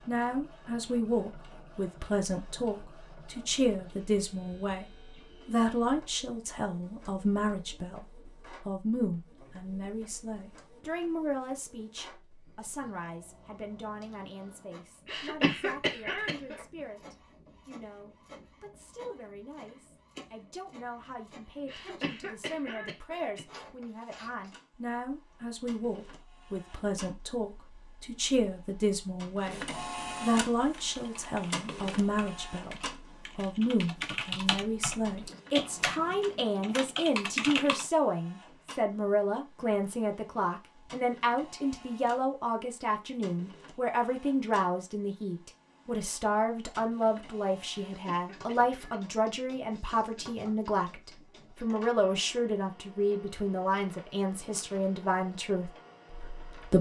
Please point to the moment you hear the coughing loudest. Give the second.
16 s.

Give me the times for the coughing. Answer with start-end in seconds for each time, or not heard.
15.1-16.6, 21.6-23.4, 47.9-49.0.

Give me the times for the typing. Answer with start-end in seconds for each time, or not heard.
30.6-37.9.